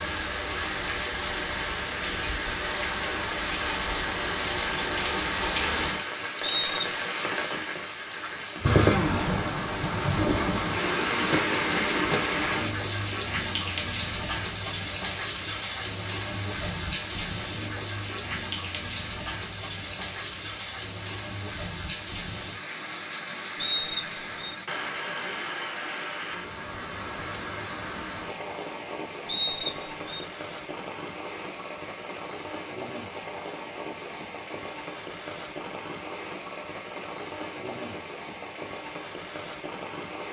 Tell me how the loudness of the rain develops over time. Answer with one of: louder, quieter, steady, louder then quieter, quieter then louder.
quieter.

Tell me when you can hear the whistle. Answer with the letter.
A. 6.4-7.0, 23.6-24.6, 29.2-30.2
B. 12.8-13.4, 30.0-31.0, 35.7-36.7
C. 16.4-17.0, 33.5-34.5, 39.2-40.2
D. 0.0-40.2
A.